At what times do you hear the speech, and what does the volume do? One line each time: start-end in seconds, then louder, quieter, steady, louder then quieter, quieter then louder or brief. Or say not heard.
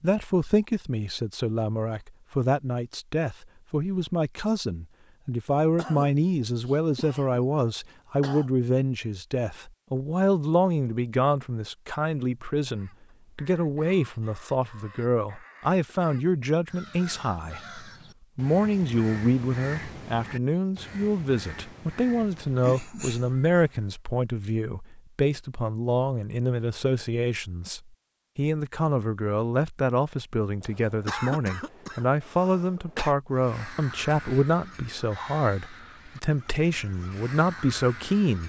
0.0-38.4 steady.